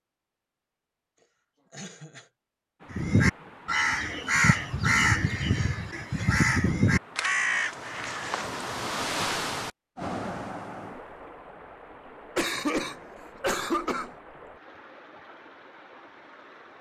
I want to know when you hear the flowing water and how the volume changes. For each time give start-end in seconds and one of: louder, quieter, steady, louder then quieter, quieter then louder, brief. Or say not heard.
2.8-16.7 louder then quieter.